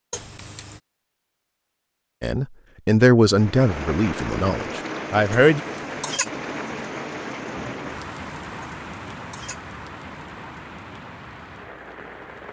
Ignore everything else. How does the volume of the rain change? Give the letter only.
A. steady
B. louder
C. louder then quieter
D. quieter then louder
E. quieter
E.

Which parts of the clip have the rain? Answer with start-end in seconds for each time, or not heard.
3.2-12.4.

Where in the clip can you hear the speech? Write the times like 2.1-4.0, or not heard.
2.2-5.6.